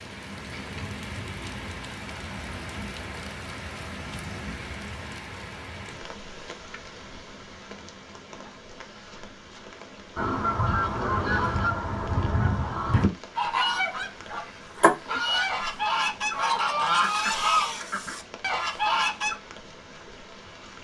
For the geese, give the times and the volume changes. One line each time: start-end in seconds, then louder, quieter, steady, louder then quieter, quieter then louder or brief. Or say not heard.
10.2-19.4 steady.